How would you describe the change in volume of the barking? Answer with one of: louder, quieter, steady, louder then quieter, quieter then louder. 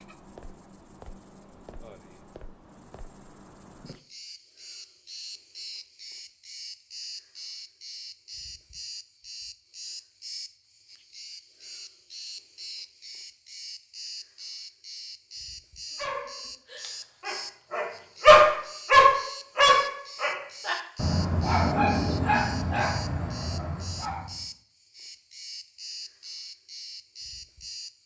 louder then quieter.